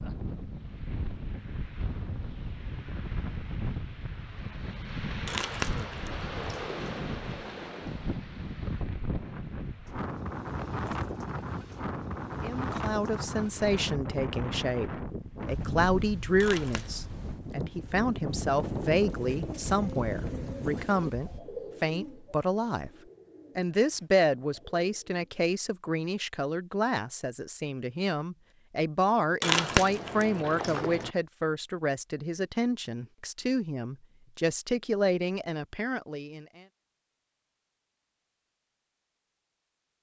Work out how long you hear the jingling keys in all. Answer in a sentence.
You can hear the jingling keys for 4 seconds altogether.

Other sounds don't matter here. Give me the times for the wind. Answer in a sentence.
The wind can be heard from 0.0 to 21.4 s.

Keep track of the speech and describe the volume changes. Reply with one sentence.
The volume of the speech stays about the same.